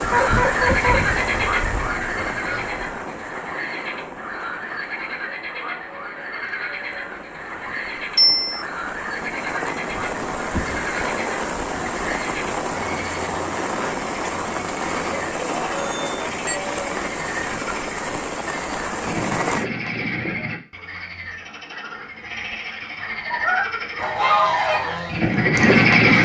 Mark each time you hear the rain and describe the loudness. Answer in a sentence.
You can hear the rain from 0.0 to 19.7 s, getting quieter then louder.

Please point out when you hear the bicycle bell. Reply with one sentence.
The bicycle bell can be heard from 8.2 to 8.6 s and from 15.8 to 16.6 s.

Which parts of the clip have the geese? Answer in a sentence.
The geese can be heard from 0.0 to 2.9 s and from 23.2 to 26.2 s.